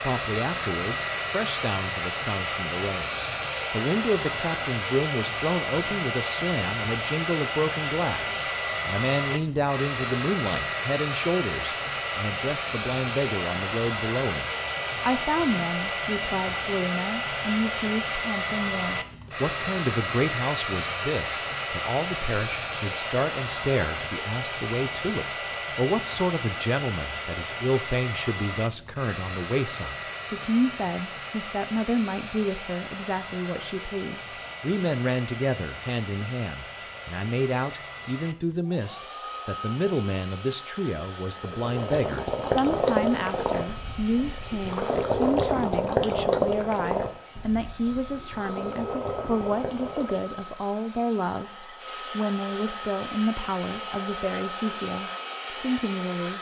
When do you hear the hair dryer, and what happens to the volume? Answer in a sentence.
You can hear the hair dryer from 0.0 to 56.3 s, getting quieter.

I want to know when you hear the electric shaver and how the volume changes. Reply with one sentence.
The electric shaver can't be heard in this clip.